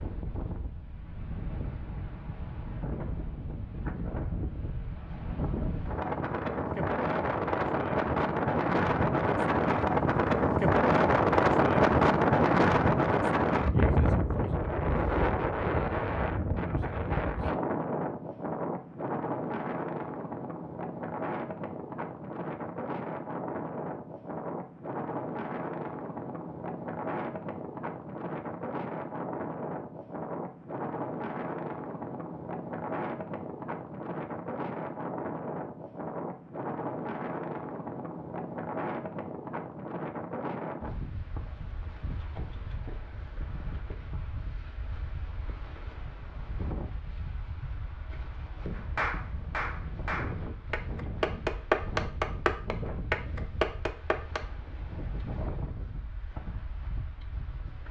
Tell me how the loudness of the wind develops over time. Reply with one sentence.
The volume of the wind goes down.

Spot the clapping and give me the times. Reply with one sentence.
You can hear the clapping from 48.8 to 54.4 s.